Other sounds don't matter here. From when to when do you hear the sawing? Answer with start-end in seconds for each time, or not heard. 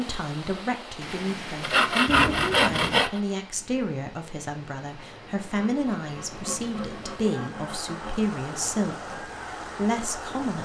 1.6-3.2, 5.5-8.2.